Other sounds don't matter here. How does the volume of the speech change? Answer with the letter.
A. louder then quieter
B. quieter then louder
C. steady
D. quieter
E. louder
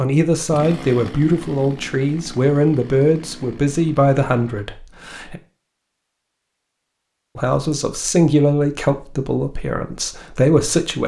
C.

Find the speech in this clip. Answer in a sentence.
The speech can be heard from 0.0 to 5.4 s and from 7.3 to 11.0 s.